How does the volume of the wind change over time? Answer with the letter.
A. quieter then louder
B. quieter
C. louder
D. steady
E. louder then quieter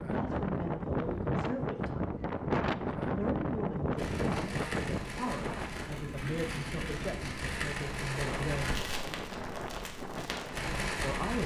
B.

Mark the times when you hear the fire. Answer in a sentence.
You can hear the fire from 4.0 to 11.4 s.